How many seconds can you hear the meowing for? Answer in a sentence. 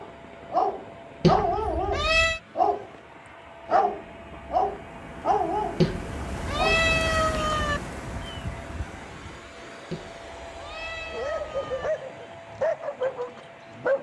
The meowing can be heard for 5 seconds in total.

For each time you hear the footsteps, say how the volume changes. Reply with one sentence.
The footsteps can't be heard in this clip.